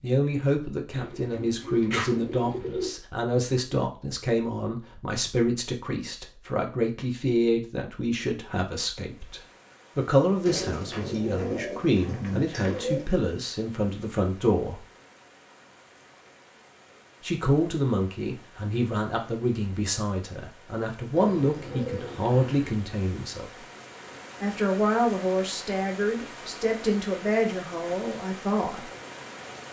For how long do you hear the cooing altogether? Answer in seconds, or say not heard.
6 s.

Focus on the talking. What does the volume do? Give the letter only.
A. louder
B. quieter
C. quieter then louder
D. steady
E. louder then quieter
D.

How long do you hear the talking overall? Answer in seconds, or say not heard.
26 s.